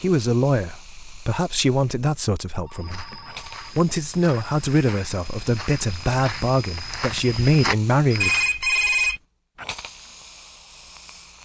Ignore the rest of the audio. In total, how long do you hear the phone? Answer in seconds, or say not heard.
2 s.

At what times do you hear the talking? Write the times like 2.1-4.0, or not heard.
0.0-8.3.